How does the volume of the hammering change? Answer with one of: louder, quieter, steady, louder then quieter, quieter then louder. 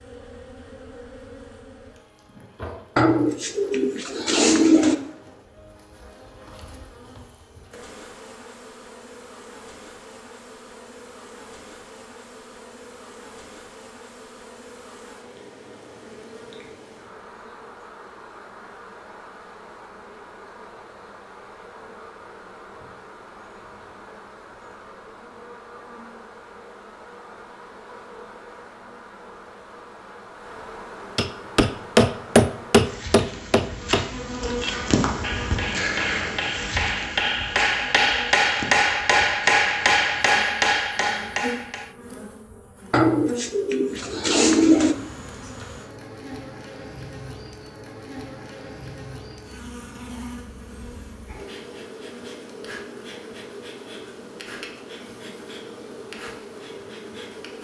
quieter then louder.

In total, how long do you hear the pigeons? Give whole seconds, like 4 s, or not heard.
4 s.